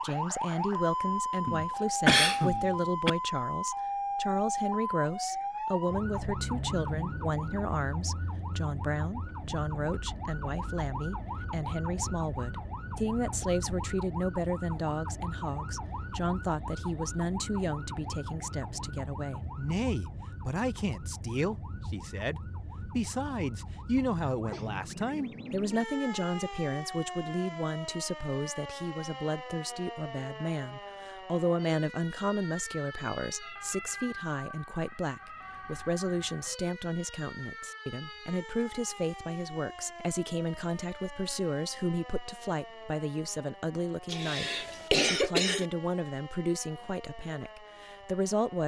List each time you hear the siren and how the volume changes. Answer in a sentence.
You can hear the siren from 0.0 to 48.6 s, getting quieter.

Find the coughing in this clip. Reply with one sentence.
You can hear the coughing from 1.4 to 3.1 s and from 44.1 to 45.6 s.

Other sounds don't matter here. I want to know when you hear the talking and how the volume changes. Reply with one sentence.
The talking can be heard from 0.0 to 48.6 s, at a steady volume.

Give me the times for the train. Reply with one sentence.
The train can't be heard in this clip.